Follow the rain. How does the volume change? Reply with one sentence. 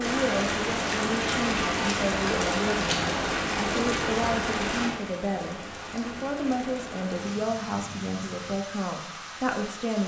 The volume of the rain goes down.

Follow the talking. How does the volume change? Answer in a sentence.
The loudness of the talking stays about the same.